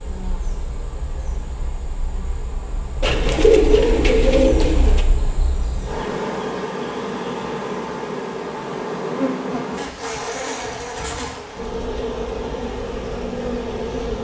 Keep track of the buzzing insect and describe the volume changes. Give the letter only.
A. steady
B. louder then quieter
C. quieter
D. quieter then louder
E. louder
E.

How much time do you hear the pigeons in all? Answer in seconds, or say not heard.
2 s.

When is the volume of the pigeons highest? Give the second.
4 s.